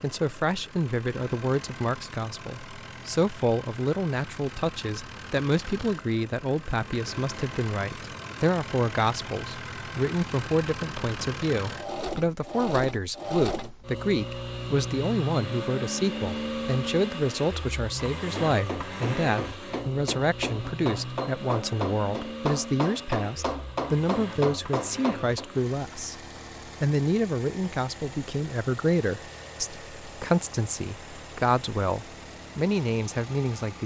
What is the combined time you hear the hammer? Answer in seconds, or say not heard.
7 s.